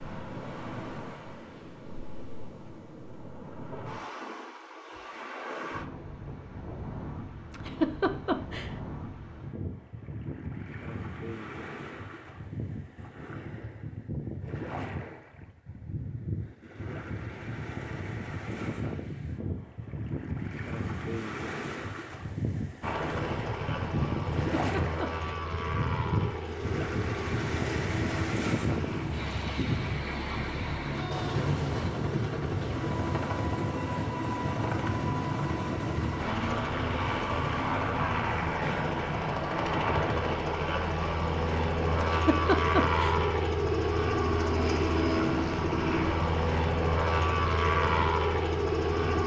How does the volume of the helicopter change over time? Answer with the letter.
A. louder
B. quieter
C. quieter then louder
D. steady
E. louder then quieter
A.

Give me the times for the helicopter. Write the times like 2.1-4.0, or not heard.
22.8-49.2.